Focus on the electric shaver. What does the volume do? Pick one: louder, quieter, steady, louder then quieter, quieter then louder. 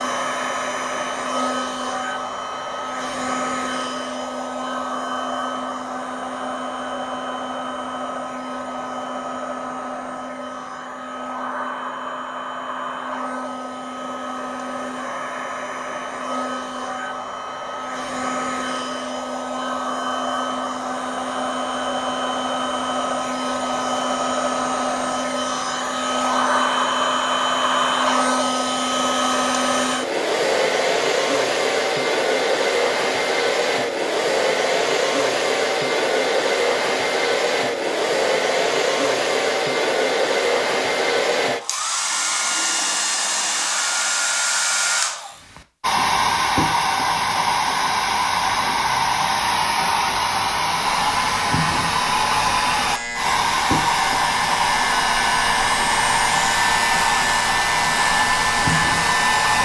louder.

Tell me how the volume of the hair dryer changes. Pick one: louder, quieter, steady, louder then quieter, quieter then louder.
louder.